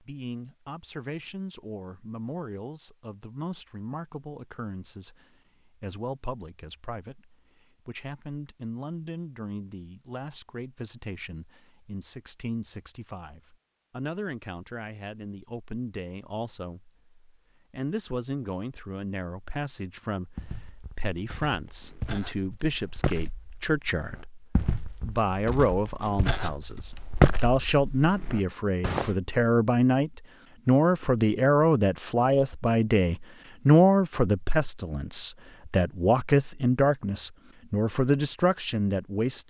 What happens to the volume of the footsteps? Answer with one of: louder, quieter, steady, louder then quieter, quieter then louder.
louder.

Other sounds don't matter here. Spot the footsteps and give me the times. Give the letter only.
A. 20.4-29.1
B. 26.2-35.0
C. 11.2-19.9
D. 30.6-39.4
A.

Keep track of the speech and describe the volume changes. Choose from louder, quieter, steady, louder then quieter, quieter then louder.
louder.